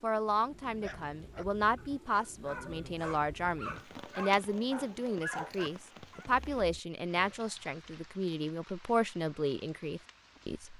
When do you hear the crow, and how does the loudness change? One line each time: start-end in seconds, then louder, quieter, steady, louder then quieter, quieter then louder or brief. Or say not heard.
not heard.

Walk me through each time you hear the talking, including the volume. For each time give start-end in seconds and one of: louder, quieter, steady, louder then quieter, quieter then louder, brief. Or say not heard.
0.0-10.7 steady.